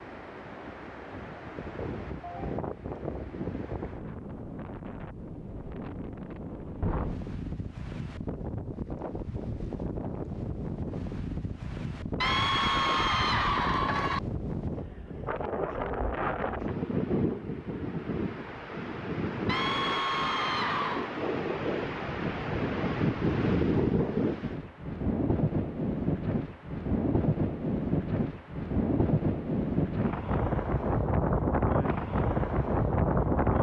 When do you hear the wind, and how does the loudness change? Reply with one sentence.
The wind can be heard from 0.0 to 33.5 s, getting louder.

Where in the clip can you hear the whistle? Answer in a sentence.
You can't hear the whistle here.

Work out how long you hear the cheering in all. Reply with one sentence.
You can hear the cheering for 4 seconds altogether.